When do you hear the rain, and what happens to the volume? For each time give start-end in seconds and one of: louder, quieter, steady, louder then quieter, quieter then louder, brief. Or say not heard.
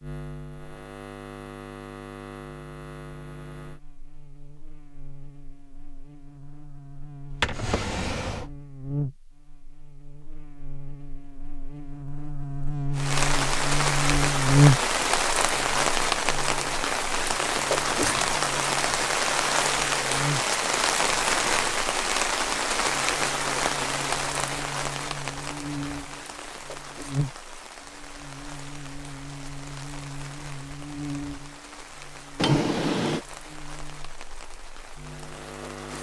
12.9-35.9 quieter.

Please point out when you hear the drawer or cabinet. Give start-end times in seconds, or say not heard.
7.3-8.5, 32.4-33.2.